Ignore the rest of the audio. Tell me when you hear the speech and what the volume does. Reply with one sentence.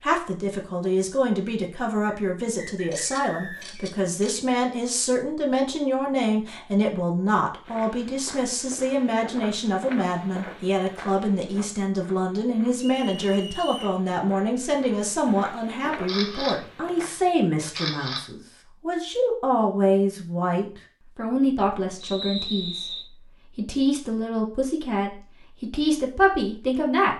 You can hear the speech from 0.0 to 27.1 s, at a steady volume.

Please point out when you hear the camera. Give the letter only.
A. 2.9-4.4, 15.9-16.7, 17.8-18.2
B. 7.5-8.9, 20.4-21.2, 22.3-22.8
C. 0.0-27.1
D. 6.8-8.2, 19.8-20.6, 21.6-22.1
A.